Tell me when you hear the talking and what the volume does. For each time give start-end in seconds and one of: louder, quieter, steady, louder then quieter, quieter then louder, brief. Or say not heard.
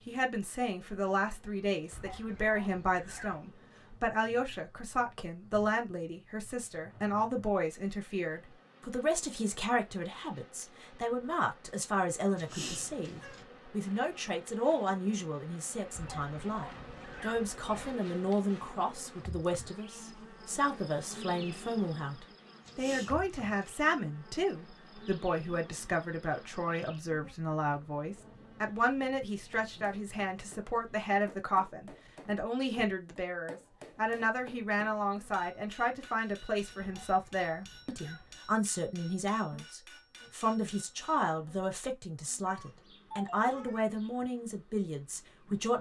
0.1-45.7 steady.